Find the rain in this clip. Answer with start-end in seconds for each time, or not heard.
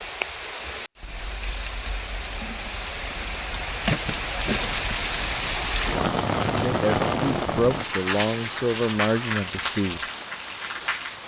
0.0-11.2.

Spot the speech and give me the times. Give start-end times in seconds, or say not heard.
6.5-10.0.